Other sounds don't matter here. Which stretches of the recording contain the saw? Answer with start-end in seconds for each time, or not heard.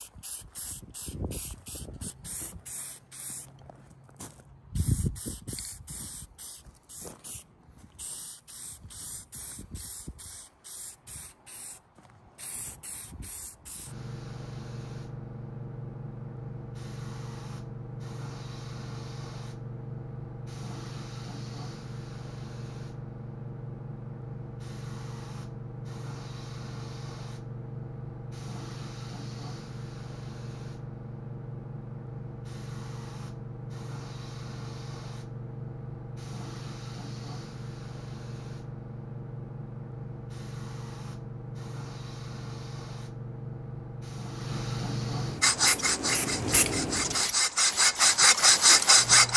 45.4-49.3.